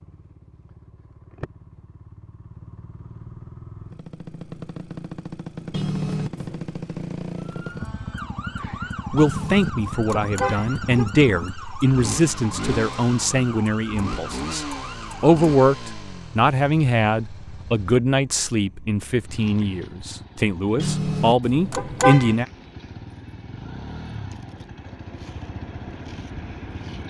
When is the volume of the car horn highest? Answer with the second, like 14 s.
22 s.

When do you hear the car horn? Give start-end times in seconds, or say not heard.
5.7-6.7, 9.2-11.1, 20.8-22.4.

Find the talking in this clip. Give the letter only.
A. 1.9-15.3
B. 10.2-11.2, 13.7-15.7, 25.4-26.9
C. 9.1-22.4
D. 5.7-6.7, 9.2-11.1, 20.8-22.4
C.